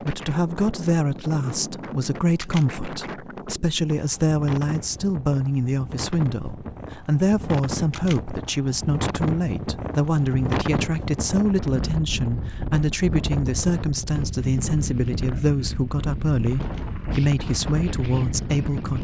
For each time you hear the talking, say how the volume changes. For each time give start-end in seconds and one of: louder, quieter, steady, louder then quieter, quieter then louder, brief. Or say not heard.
0.0-19.0 steady.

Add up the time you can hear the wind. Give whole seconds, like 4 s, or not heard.
19 s.